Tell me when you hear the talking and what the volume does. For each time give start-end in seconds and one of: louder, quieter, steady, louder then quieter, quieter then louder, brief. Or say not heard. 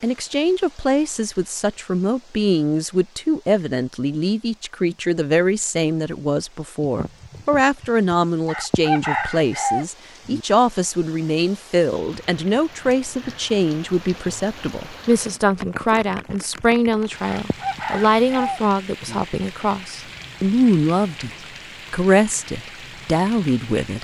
0.0-21.3 steady
21.9-23.9 brief.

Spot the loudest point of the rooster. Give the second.
9 s.